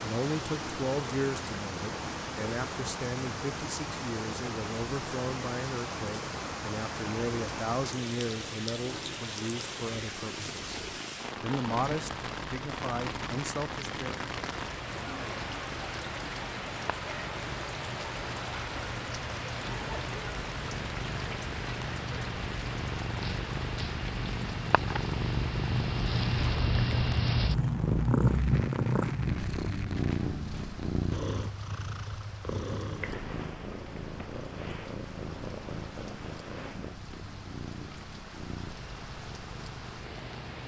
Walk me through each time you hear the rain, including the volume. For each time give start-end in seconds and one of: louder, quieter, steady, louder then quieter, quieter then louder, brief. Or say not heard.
0.0-40.6 quieter.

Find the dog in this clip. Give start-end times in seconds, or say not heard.
not heard.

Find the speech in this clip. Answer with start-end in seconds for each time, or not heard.
0.0-10.8, 11.4-14.2.